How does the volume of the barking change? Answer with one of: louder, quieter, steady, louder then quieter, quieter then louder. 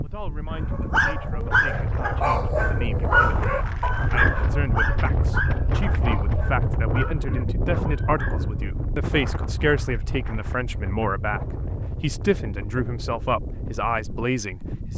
quieter.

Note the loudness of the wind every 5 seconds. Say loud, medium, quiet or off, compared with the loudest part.
loud, loud, medium.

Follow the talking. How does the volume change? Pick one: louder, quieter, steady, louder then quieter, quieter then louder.
louder.